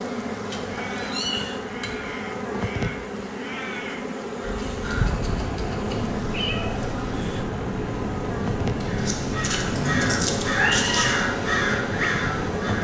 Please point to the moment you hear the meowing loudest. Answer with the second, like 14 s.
11 s.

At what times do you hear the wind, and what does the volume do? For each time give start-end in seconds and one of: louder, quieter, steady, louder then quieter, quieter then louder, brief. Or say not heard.
5.1-12.7 steady.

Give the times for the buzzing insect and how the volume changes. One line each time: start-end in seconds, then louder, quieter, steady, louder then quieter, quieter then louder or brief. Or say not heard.
0.0-12.7 steady.